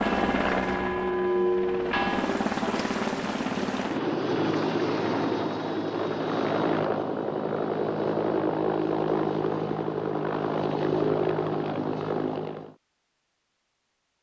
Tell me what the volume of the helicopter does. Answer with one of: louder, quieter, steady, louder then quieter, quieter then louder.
steady.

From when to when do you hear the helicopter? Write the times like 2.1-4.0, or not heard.
0.0-12.8.